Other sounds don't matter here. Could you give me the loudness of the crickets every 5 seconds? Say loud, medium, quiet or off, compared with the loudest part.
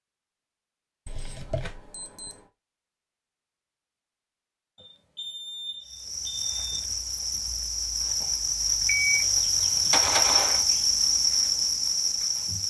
off, loud, loud.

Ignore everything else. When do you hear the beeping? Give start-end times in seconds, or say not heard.
1.1-2.4, 4.8-6.5, 8.8-10.7.